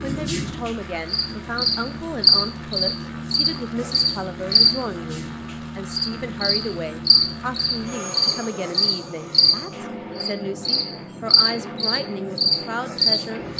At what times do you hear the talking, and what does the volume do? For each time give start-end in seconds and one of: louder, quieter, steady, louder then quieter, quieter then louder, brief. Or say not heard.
0.0-13.4 steady.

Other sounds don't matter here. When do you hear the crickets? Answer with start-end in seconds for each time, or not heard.
0.0-13.5.